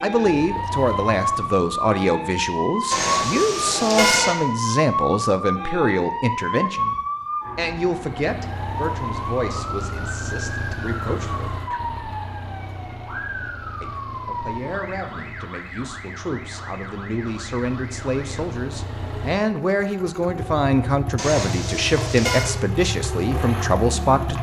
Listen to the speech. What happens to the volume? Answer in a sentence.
The loudness of the speech goes down, then up.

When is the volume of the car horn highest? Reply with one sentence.
The loudest moment of the car horn is at 4 seconds.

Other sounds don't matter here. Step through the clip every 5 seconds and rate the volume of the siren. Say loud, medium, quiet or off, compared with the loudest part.
loud, loud, medium, quiet, medium.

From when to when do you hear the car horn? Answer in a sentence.
The car horn can be heard from 2.9 to 4.3 s and from 21.1 to 22.6 s.